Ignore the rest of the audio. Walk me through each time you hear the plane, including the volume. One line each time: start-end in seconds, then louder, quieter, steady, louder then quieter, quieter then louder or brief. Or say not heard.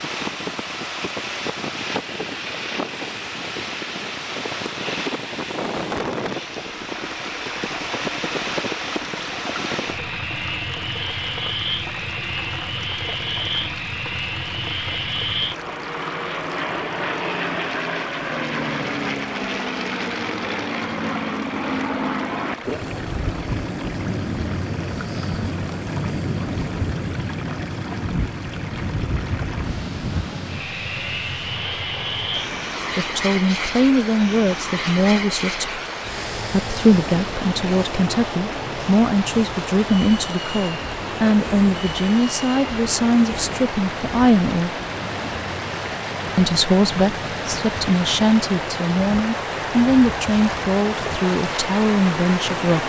0.0-52.8 quieter.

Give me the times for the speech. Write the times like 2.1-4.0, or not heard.
33.0-35.7, 36.5-44.8, 46.4-52.8.